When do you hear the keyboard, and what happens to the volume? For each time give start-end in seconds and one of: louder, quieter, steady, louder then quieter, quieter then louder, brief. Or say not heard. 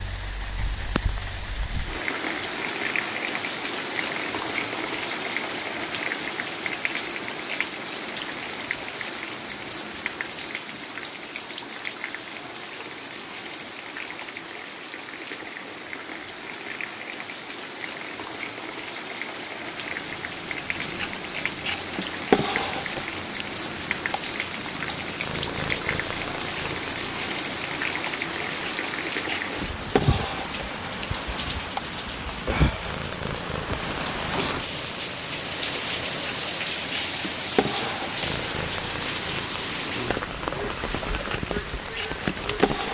not heard.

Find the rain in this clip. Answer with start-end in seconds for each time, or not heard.
0.0-42.8.